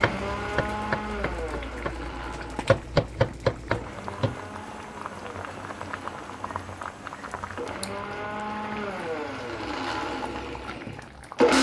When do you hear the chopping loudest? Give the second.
3 s.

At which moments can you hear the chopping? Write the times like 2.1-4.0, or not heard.
0.0-4.3.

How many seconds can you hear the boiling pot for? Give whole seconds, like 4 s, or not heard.
11 s.